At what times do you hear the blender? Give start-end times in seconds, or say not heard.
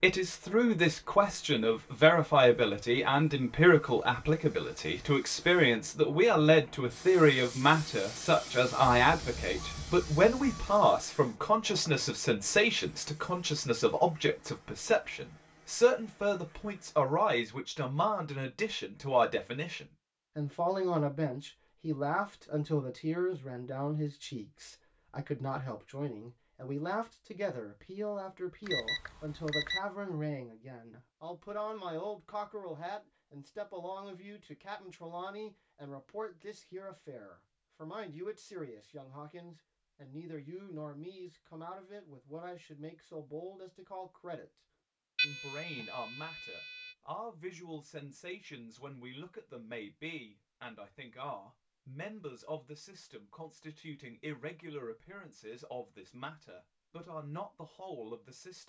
not heard.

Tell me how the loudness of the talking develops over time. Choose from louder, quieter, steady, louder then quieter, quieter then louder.
quieter.